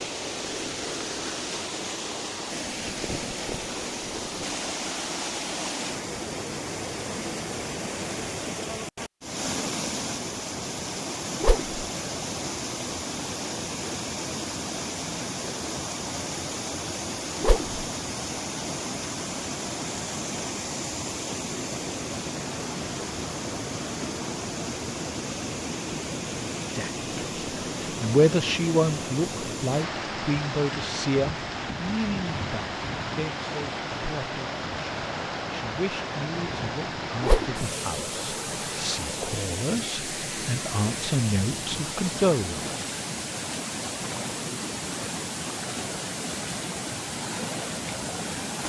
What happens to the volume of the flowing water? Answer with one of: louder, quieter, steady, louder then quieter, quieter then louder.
steady.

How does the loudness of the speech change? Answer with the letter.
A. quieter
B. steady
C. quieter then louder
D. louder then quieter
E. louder
C.